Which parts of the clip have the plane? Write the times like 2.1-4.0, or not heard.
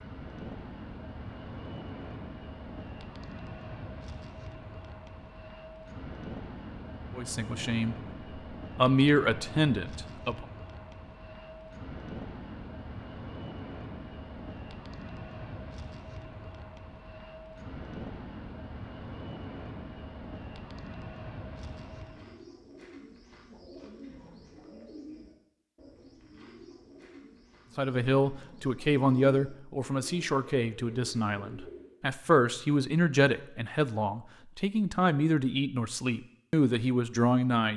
0.0-22.5.